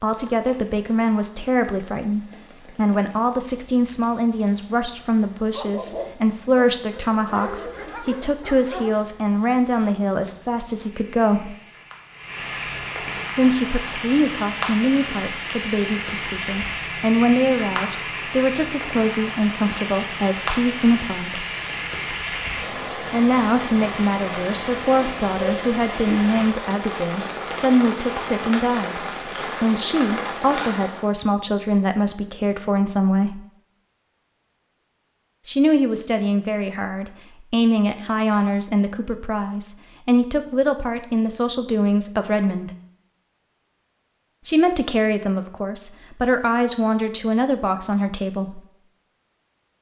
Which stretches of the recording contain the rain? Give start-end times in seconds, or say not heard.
0.0-31.1.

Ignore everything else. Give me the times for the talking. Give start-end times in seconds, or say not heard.
0.0-11.6, 13.3-21.4, 23.1-33.4, 35.5-42.7, 44.5-48.6.